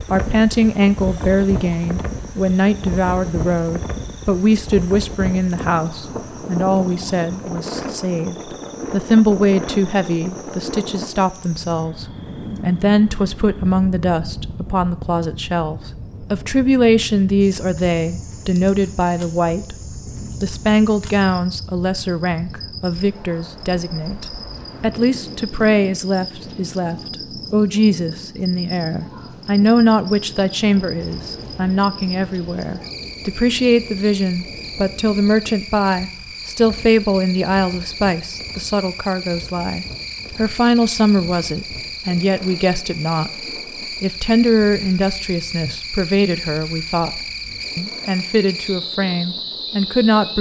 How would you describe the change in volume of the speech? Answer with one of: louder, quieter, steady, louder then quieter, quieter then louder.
steady.